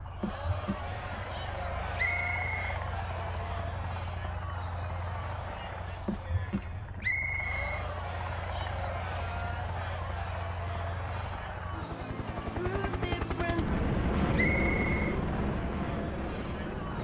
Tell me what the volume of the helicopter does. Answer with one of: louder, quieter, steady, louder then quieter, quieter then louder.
louder.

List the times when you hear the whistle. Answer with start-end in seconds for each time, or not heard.
1.9-3.5, 7.0-7.8, 14.3-15.2.